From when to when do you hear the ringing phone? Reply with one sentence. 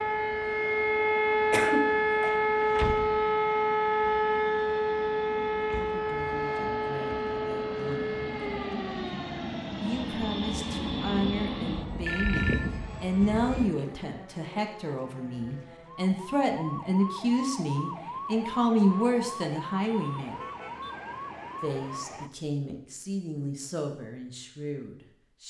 You can hear the ringing phone from 12.1 to 12.8 s.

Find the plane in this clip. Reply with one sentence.
You can hear the plane from 0.0 to 13.8 s.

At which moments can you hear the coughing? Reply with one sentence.
The coughing can be heard from 1.5 to 2.4 s.